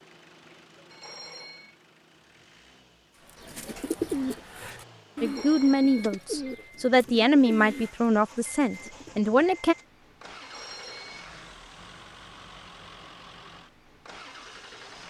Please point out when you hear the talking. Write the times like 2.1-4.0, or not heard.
5.2-9.8.